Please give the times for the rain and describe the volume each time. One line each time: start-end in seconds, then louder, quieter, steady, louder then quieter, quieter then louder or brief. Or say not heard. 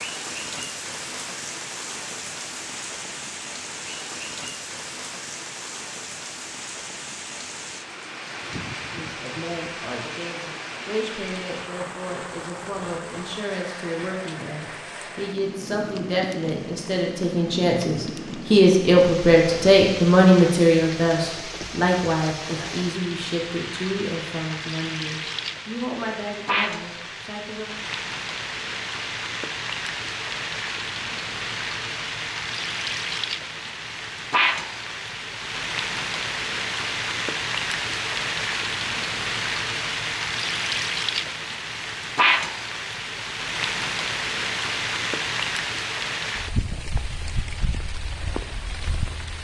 0.0-49.3 louder.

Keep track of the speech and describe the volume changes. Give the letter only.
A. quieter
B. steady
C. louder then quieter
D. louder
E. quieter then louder
C.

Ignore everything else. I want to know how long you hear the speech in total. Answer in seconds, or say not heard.
19 s.